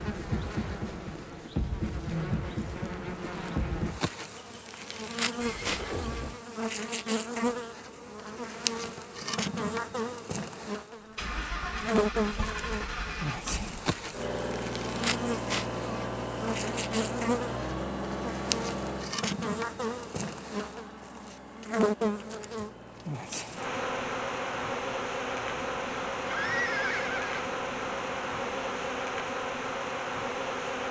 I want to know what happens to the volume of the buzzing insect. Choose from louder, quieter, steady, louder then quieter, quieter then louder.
steady.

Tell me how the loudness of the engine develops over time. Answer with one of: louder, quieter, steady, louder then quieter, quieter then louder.
quieter.